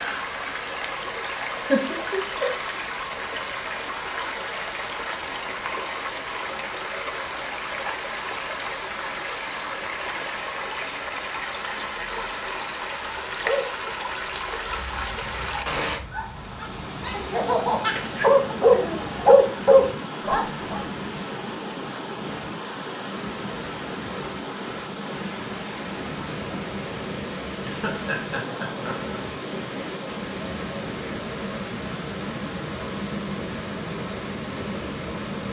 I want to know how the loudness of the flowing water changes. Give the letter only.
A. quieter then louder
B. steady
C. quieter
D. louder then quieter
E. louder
B.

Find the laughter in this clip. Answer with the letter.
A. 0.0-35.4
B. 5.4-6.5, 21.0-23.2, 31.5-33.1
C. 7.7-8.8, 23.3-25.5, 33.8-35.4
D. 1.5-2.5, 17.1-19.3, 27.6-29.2
D.